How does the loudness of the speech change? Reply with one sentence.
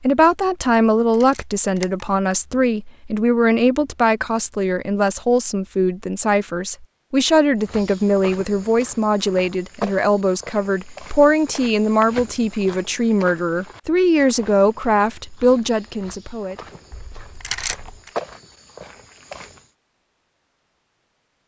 The volume of the speech stays about the same.